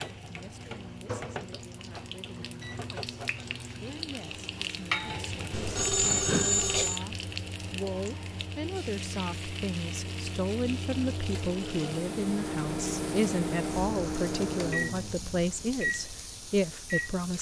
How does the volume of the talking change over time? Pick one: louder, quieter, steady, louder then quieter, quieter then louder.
louder.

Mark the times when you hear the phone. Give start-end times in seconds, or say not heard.
5.5-7.0.